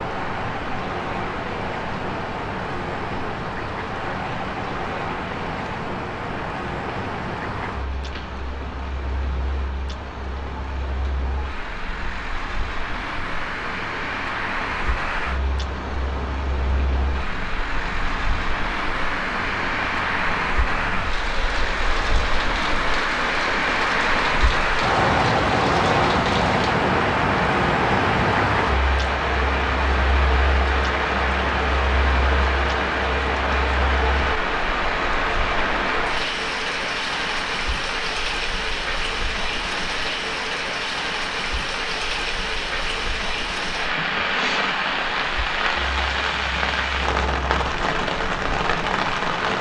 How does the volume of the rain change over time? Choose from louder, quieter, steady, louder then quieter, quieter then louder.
louder.